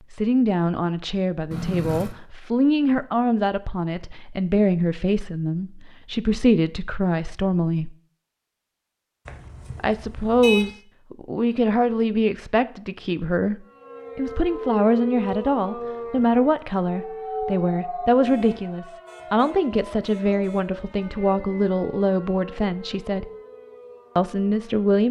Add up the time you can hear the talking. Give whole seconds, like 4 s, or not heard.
22 s.